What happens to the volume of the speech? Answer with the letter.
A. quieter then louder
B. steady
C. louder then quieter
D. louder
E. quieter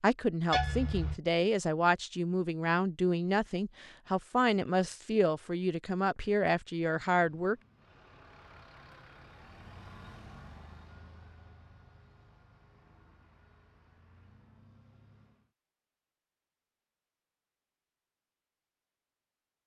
B.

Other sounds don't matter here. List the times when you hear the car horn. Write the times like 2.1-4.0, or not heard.
0.5-1.2.